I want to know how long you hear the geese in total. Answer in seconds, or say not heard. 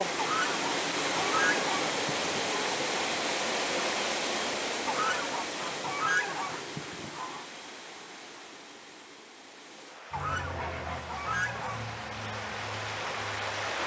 7 s.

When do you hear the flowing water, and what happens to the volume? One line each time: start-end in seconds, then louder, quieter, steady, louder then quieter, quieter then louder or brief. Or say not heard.
0.0-13.8 quieter then louder.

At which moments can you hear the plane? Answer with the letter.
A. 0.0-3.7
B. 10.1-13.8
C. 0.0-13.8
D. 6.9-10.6
B.